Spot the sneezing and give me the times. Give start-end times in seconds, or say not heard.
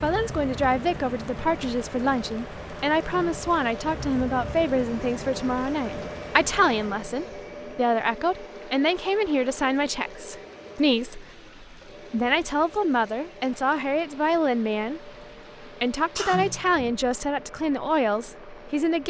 16.1-16.8.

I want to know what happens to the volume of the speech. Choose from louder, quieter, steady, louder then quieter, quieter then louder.
steady.